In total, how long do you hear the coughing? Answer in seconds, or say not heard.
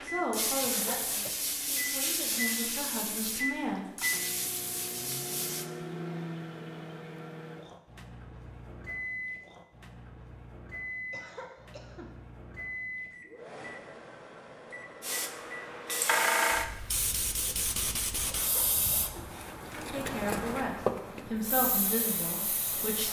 3 s.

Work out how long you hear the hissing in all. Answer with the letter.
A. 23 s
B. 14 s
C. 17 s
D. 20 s
B.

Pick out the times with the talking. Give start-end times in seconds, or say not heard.
0.0-3.9, 19.8-23.0.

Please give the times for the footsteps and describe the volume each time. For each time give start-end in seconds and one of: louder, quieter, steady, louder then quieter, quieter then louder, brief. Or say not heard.
not heard.